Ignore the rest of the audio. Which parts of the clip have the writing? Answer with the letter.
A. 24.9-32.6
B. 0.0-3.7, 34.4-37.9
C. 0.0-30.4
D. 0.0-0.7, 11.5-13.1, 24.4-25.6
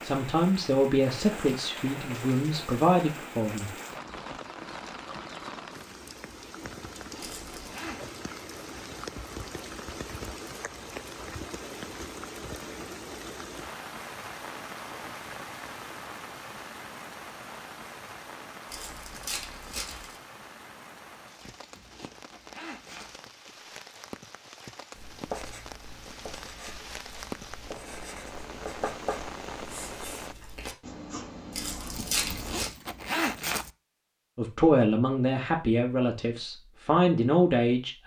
A.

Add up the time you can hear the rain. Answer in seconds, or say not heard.
30 s.